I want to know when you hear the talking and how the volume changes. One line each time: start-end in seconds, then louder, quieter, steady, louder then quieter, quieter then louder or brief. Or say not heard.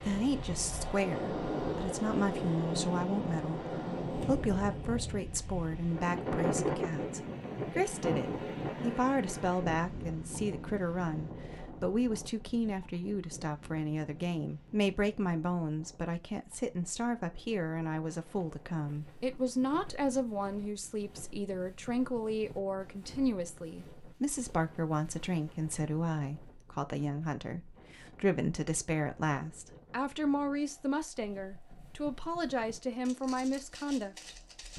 0.0-34.7 steady.